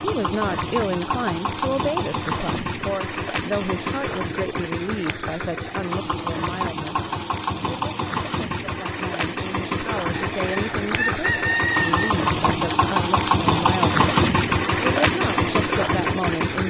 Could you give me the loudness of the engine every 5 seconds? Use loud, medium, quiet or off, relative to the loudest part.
medium, medium, loud, loud.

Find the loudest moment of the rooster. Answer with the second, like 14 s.
12 s.